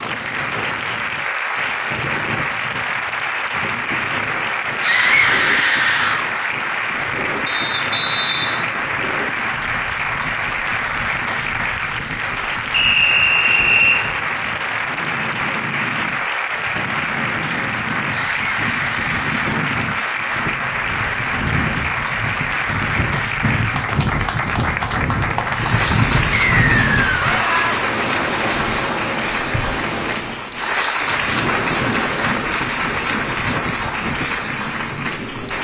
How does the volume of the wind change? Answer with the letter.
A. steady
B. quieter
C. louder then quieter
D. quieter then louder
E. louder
E.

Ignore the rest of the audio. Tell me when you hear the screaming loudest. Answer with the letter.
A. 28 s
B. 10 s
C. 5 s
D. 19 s
C.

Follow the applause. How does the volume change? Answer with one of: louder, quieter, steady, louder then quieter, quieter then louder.
steady.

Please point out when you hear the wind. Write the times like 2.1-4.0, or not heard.
0.0-35.5.